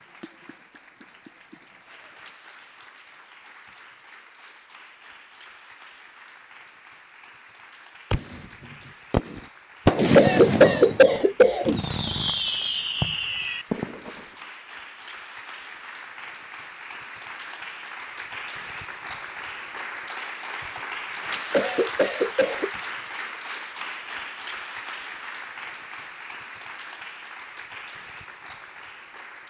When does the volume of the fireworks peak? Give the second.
10 s.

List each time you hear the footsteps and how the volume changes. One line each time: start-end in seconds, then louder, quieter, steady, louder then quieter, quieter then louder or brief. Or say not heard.
not heard.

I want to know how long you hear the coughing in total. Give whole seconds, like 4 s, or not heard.
3 s.